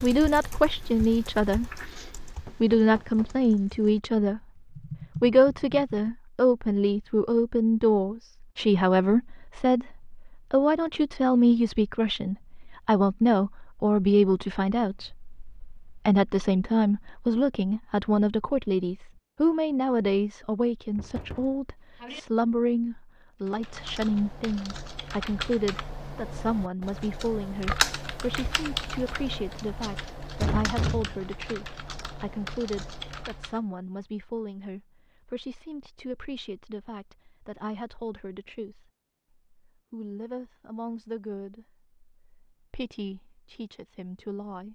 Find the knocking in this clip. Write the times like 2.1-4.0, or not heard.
2.5-3.4, 20.9-22.2, 30.4-31.2.